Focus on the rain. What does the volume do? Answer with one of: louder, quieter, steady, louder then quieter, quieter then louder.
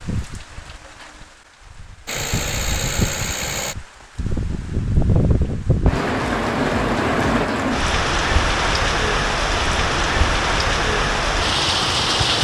louder.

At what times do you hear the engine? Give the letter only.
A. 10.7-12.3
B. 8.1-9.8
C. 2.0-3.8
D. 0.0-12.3
C.